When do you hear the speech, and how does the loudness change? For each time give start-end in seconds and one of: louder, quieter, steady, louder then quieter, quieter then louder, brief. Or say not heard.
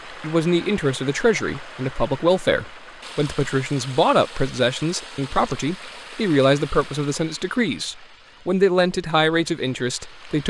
0.1-10.4 steady.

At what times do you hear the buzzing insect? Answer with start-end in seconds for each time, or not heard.
not heard.